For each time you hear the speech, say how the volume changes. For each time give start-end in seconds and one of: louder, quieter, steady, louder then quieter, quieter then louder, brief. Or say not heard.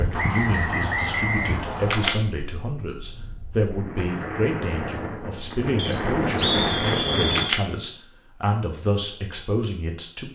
0.0-10.3 steady.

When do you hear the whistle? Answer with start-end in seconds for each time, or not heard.
0.1-2.1, 5.8-7.5.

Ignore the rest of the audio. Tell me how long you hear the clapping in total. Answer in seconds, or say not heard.
not heard.